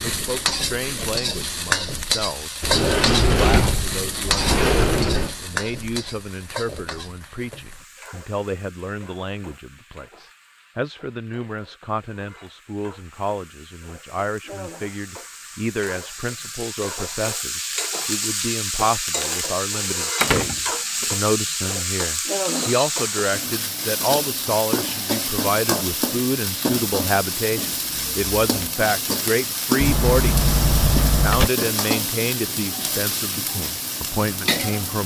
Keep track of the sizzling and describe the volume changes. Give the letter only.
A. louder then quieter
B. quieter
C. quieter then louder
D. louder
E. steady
C.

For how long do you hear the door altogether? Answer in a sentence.
You can hear the door for 5 seconds altogether.